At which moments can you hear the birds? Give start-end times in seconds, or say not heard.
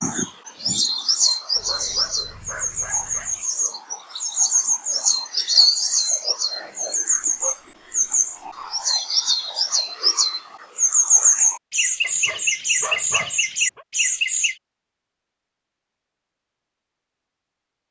0.0-14.6.